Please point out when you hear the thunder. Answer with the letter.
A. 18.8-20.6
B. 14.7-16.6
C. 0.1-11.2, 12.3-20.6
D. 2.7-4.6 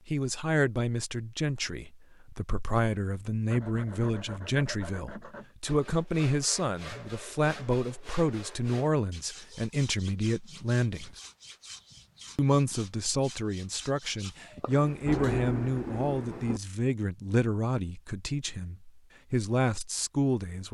B.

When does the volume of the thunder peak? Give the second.
15 s.